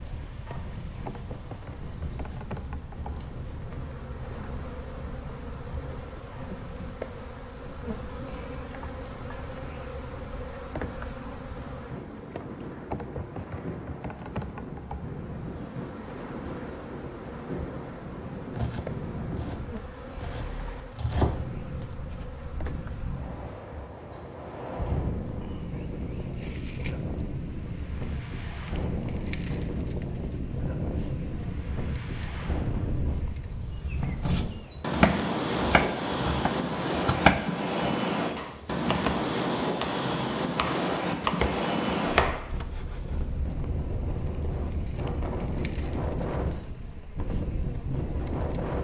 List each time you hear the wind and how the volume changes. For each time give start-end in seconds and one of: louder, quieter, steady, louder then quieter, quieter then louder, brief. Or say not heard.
0.0-48.7 louder.